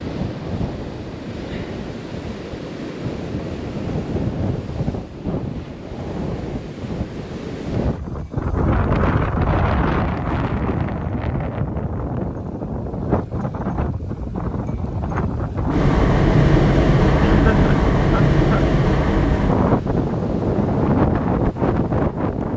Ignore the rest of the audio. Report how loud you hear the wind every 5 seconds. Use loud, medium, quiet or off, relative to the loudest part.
medium, medium, medium, loud, loud.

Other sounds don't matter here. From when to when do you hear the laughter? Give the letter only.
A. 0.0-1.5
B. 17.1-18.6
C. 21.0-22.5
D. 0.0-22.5
B.